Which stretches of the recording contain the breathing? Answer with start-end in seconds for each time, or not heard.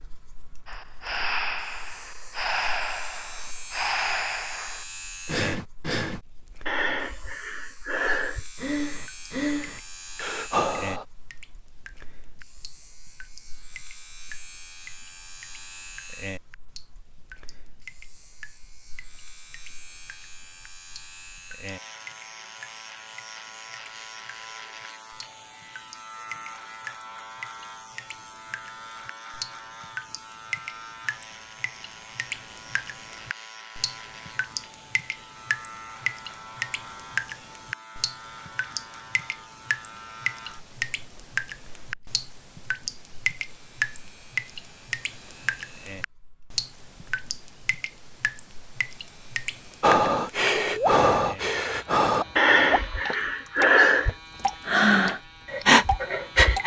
0.7-11.1, 49.8-56.6.